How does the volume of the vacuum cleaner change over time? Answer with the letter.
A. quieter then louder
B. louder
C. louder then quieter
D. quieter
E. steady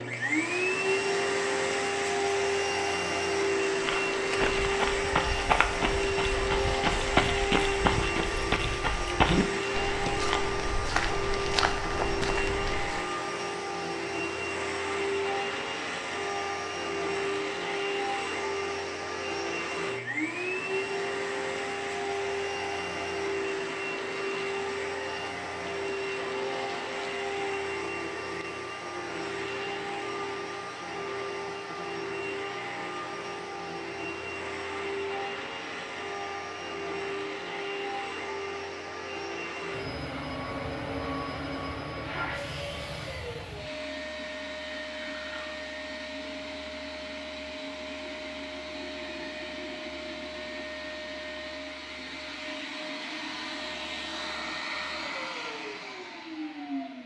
D.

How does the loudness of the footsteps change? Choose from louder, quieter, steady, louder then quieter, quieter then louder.
steady.